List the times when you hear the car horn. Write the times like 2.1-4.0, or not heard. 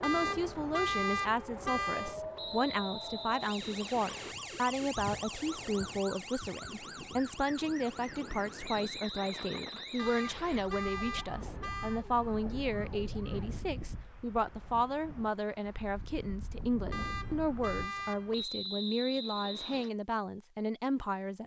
0.0-2.1, 9.9-12.1, 16.9-18.4.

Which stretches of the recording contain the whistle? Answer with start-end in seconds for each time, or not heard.
2.4-4.3, 8.7-10.7, 18.3-19.9.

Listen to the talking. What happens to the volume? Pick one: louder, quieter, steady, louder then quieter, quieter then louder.
steady.